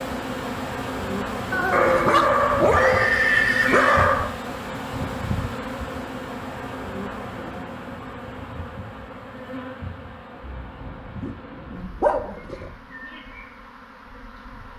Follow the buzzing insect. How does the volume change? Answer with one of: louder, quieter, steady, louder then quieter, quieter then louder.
quieter.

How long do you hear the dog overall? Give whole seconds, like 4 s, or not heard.
5 s.